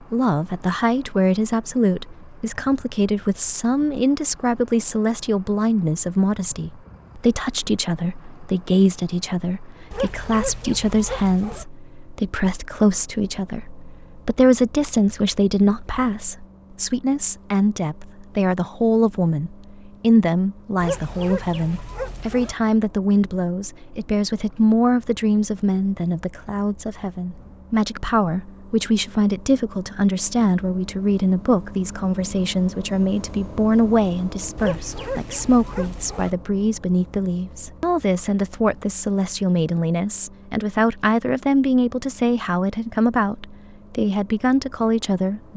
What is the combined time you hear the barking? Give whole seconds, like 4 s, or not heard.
5 s.